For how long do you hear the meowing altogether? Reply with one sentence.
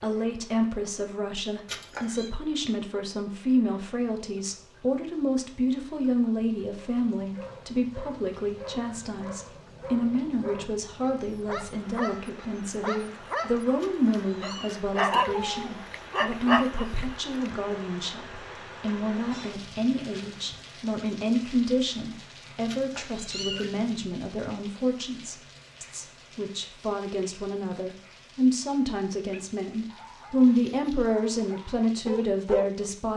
The meowing can be heard for 3 seconds in total.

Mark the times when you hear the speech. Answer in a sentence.
You can hear the speech from 0.0 to 33.1 s.